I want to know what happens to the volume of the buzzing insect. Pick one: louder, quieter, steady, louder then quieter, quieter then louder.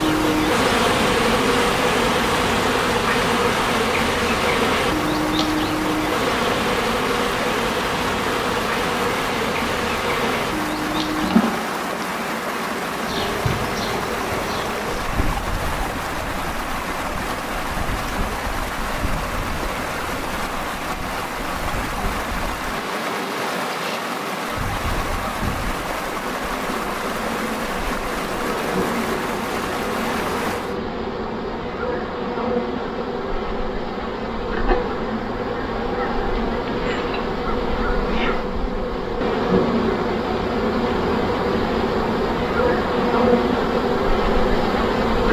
quieter then louder.